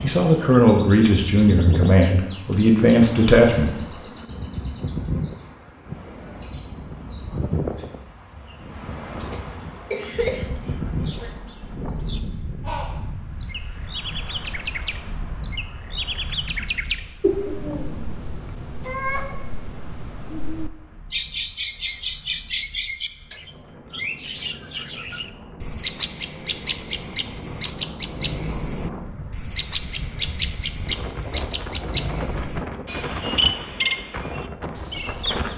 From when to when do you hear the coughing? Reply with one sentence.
You can hear the coughing from 9.4 to 11.4 s.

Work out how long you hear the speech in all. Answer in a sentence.
The speech can be heard for 4 seconds in total.